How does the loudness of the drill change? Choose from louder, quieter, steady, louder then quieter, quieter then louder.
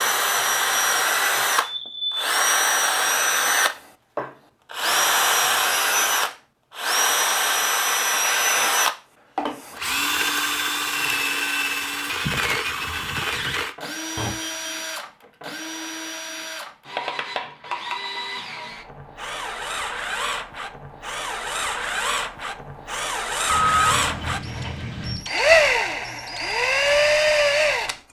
quieter then louder.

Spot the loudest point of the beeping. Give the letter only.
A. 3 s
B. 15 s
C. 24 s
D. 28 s
C.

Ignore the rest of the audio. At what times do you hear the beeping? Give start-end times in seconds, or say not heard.
1.6-2.4, 14.2-14.7, 23.4-25.2.